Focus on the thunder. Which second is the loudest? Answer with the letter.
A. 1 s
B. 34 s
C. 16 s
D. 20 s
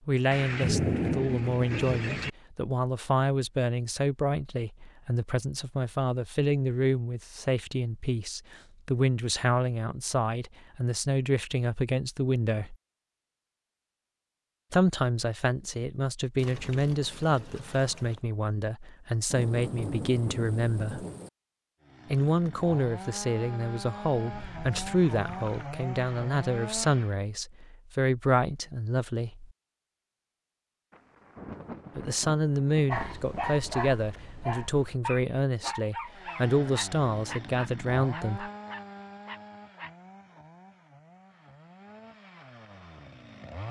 A.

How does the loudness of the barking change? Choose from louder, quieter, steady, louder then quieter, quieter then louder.
quieter.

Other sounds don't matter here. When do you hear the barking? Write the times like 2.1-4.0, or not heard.
32.9-40.4.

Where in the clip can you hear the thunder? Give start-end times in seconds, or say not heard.
0.3-2.3, 19.3-21.3, 30.9-34.5.